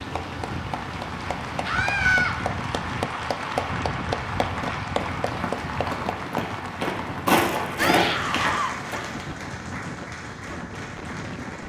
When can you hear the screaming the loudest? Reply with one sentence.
The volume of the screaming peaks at 2 seconds.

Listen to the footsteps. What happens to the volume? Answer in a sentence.
The loudness of the footsteps goes up, then down.